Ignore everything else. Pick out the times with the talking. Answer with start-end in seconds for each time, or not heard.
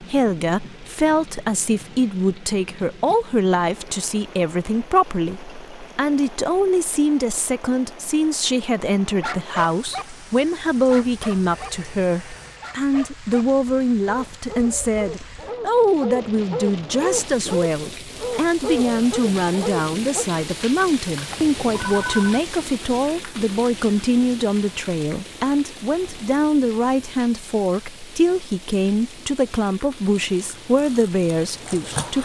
0.0-32.2.